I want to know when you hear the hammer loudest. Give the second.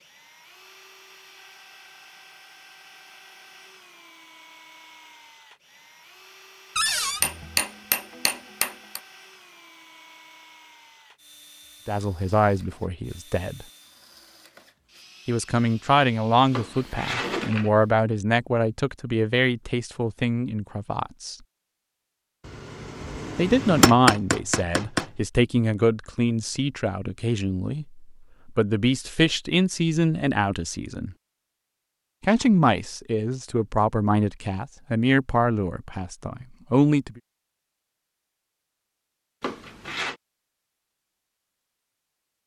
24 s.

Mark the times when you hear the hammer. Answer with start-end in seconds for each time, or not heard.
7.2-9.0, 22.4-25.1.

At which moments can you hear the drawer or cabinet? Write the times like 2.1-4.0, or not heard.
6.8-7.2, 16.5-17.7, 39.4-40.1.